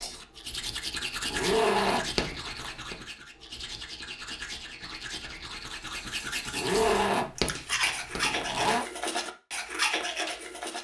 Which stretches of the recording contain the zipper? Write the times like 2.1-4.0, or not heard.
1.3-3.0, 6.5-8.8.